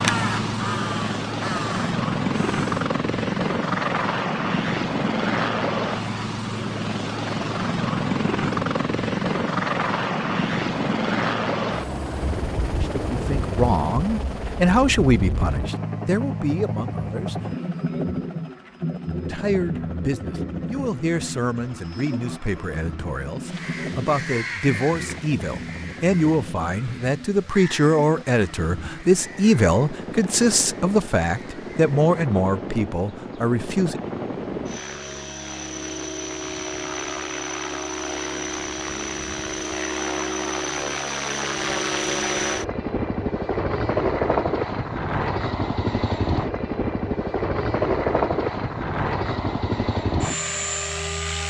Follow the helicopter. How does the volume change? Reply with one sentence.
The loudness of the helicopter goes down, then up.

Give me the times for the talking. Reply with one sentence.
You can hear the talking from 12.6 to 17.4 s and from 19.2 to 34.0 s.